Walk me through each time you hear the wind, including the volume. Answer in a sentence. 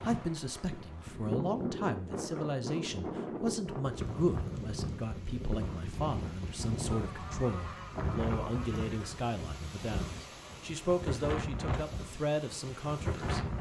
The wind can be heard from 0.0 to 13.5 s, at a steady volume.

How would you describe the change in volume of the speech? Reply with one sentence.
The volume of the speech stays about the same.